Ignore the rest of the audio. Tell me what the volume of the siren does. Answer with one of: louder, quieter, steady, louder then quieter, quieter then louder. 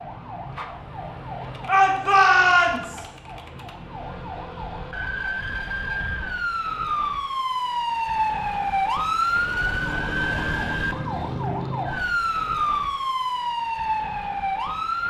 louder.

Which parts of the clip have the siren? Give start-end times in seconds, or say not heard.
0.0-15.0.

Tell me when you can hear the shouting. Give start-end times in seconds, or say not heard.
1.6-3.0.